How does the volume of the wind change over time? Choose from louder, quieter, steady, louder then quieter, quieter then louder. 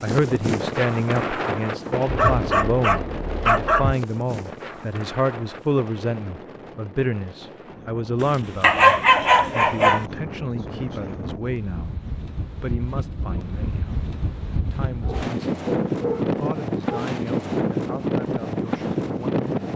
quieter then louder.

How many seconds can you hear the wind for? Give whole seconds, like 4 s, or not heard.
20 s.